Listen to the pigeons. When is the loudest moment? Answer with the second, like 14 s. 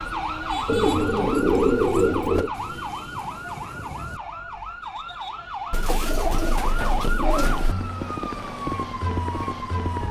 2 s.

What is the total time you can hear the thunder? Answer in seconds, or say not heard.
2 s.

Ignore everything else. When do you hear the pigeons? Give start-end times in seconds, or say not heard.
0.7-2.5, 5.7-7.8.